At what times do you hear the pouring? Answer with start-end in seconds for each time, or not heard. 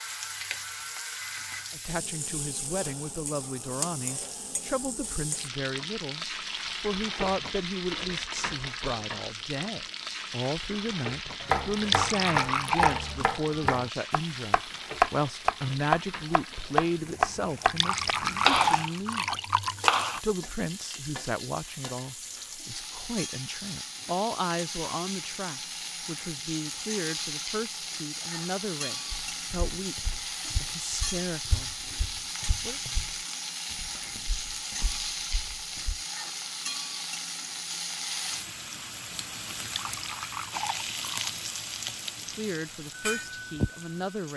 11.7-13.2, 17.6-20.0, 39.6-41.4.